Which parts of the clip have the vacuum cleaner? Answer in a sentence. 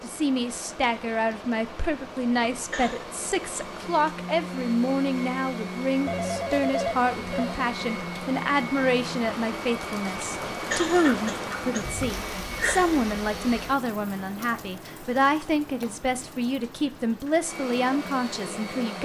The vacuum cleaner can be heard from 0.0 to 13.8 s and from 17.4 to 18.9 s.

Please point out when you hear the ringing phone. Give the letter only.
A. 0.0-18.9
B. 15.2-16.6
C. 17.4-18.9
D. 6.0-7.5
D.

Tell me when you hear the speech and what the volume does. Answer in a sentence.
The speech can be heard from 0.0 to 18.9 s, at a steady volume.